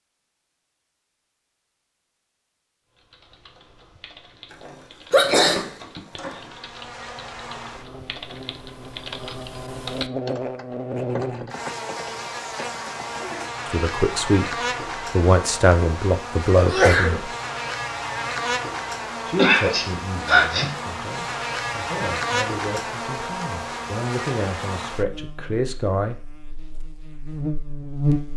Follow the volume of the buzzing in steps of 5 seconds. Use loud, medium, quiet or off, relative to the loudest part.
off, medium, loud, loud, loud, loud.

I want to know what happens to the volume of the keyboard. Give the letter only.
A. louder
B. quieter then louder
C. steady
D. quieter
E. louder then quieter
A.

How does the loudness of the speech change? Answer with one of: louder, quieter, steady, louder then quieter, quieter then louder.
quieter then louder.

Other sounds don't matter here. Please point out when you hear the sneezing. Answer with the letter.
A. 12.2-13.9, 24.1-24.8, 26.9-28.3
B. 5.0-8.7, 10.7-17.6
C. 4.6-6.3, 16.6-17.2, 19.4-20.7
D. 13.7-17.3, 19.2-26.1
C.